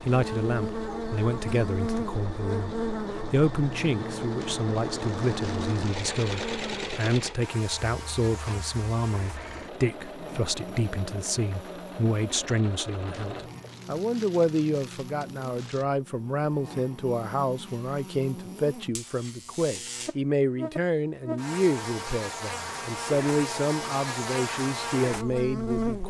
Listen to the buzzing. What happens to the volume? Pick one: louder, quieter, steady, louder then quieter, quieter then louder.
quieter then louder.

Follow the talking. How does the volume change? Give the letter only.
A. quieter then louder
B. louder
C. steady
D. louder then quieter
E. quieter
C.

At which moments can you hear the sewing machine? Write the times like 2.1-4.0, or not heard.
0.0-13.7.